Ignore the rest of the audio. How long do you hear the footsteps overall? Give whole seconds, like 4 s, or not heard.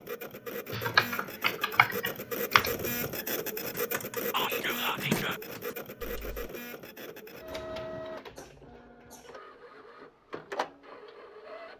not heard.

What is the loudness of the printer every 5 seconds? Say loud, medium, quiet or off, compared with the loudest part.
loud, medium, medium.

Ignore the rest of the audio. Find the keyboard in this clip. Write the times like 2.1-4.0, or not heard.
0.7-6.5.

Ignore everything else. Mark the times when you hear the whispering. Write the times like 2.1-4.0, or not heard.
4.3-5.4.